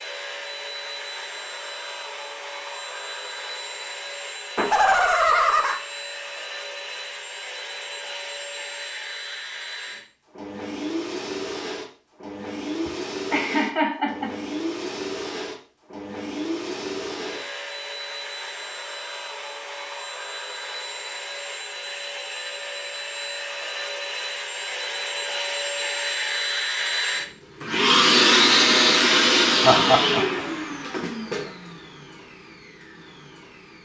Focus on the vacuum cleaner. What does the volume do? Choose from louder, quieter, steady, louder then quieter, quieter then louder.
louder.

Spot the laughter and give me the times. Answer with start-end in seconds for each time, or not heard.
4.5-5.8, 12.8-14.3, 29.6-30.2.